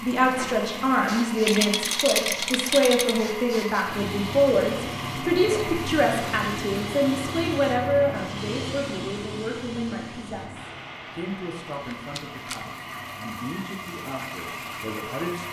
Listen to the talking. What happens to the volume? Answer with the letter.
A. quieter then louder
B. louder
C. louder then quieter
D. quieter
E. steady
D.